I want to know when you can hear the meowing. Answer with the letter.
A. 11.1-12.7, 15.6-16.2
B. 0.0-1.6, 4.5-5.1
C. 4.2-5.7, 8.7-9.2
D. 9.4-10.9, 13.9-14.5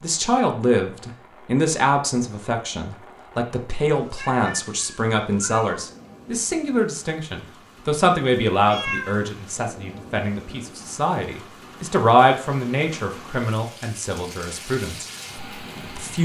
C.